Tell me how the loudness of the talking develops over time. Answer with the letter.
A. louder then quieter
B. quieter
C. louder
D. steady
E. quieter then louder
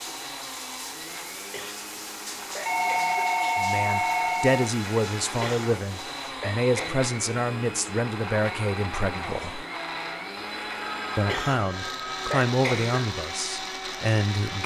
D.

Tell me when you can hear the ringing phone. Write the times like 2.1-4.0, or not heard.
2.6-4.7, 10.3-12.3.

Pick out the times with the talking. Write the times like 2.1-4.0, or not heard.
3.5-9.7, 11.2-14.6.